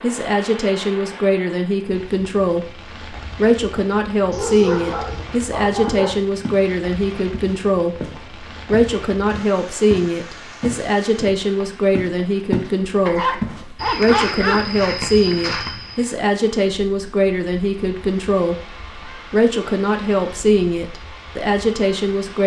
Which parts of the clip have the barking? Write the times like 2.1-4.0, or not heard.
4.3-6.2, 13.1-14.7.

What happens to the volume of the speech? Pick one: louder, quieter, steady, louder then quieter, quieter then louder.
steady.